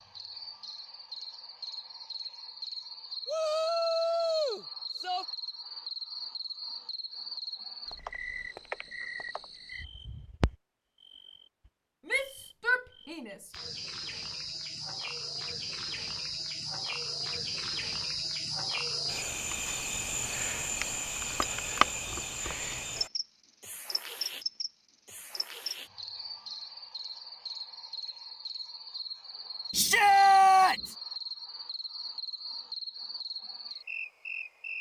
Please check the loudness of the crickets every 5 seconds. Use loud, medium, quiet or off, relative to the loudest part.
medium, medium, medium, loud, loud, medium, medium.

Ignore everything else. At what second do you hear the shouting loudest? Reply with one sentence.
The loudest moment of the shouting is at 30 seconds.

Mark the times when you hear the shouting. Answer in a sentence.
You can hear the shouting from 3.2 to 5.2 s, from 12.1 to 13.4 s and from 29.7 to 30.9 s.